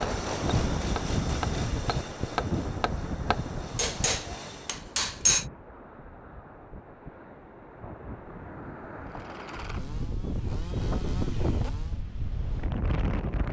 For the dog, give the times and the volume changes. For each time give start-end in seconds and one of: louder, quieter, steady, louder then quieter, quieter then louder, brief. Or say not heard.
not heard.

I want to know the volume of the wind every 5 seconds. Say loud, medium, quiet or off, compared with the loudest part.
loud, medium, loud.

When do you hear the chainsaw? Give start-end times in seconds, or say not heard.
0.0-4.8, 9.1-12.1.